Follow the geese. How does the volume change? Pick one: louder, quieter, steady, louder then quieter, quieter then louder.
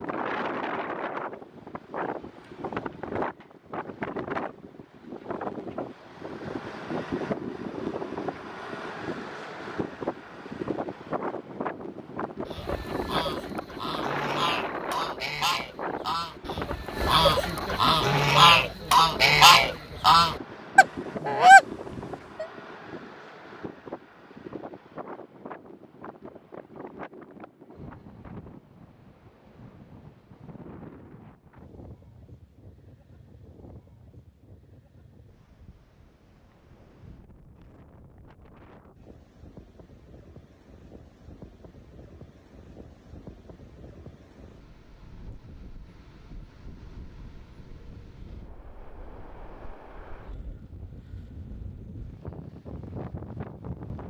louder.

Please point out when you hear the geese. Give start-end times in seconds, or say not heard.
12.4-22.4.